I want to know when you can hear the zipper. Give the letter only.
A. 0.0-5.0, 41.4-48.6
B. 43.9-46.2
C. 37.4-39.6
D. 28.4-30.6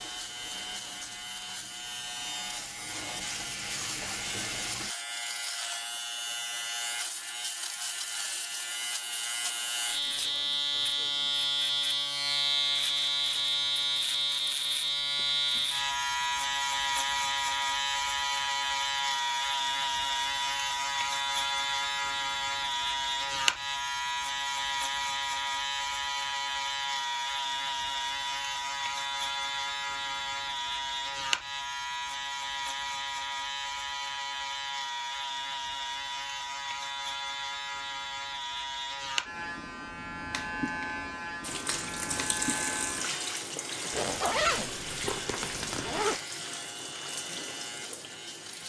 B.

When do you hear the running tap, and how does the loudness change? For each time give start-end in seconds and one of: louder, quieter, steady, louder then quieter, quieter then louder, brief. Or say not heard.
0.0-5.0 louder
41.4-48.6 quieter.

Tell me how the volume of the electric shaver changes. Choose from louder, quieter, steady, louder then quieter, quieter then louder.
louder then quieter.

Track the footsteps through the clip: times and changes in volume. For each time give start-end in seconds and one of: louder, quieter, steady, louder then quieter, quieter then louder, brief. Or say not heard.
not heard.